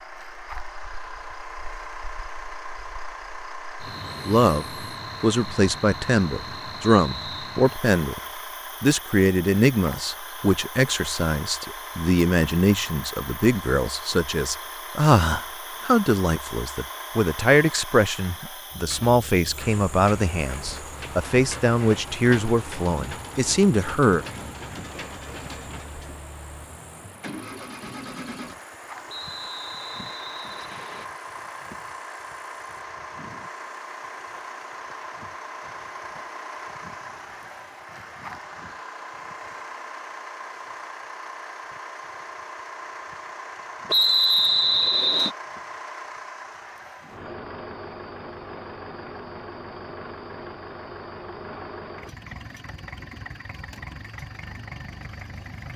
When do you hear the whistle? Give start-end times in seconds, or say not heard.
6.8-7.2, 29.1-31.1, 43.9-45.3.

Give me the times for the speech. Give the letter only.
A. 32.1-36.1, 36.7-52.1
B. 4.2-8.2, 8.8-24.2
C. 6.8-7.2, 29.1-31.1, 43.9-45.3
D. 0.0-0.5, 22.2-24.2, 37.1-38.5
B.